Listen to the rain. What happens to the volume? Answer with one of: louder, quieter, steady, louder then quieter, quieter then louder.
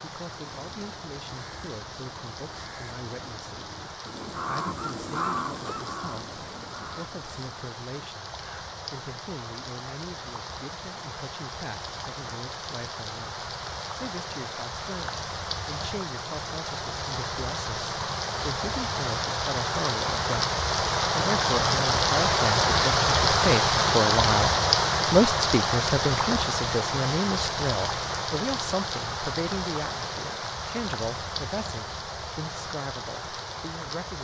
louder then quieter.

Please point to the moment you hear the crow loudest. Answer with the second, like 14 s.
5 s.